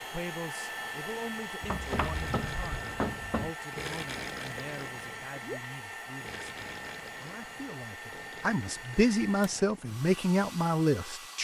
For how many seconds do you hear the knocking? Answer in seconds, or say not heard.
2 s.